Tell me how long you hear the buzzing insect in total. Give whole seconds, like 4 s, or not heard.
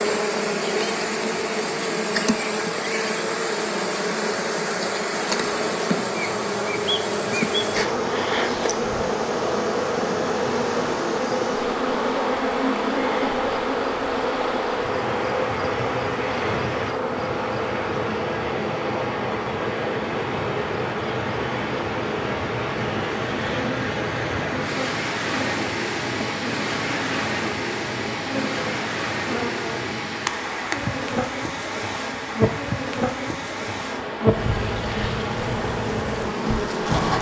37 s.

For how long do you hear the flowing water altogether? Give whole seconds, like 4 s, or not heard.
37 s.